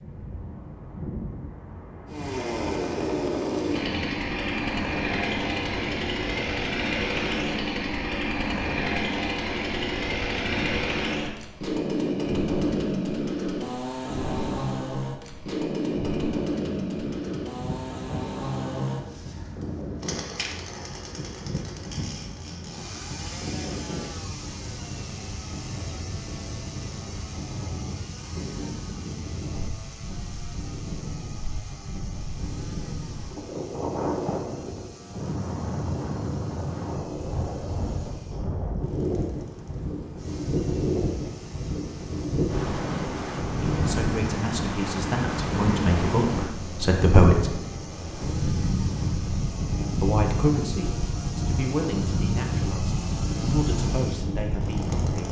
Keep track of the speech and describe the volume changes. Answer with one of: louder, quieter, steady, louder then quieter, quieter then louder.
louder then quieter.